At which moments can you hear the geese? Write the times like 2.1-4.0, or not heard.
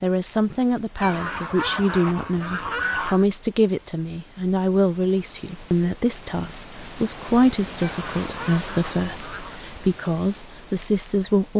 1.0-3.2, 7.8-9.6.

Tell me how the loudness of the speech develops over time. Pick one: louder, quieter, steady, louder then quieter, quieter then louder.
steady.